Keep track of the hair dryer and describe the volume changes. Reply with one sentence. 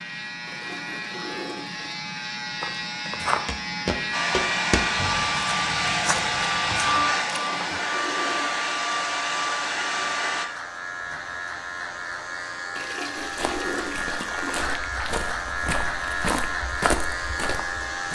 The volume of the hair dryer stays about the same.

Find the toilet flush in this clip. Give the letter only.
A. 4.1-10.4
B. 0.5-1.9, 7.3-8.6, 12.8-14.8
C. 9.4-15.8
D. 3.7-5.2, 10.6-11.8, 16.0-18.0
B.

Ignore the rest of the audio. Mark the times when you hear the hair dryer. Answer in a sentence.
You can hear the hair dryer from 4.1 to 10.4 s.